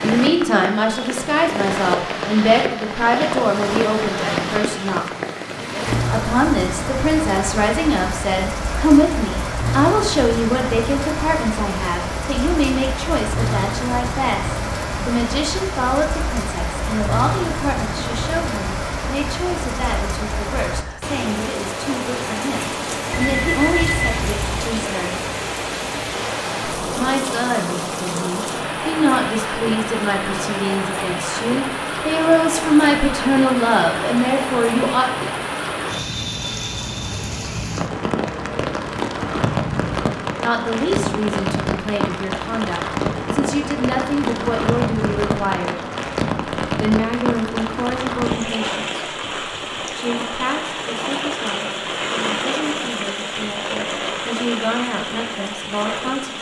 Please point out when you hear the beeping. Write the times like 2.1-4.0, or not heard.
23.1-24.8.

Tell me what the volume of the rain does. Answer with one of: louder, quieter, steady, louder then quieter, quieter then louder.
steady.